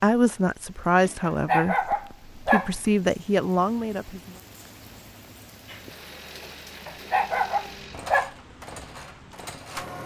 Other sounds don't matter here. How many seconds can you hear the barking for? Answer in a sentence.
The barking can be heard for 3 seconds in total.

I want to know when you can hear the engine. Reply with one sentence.
The engine can be heard from 5.7 to 10.0 s.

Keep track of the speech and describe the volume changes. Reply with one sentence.
The volume of the speech goes down, then up.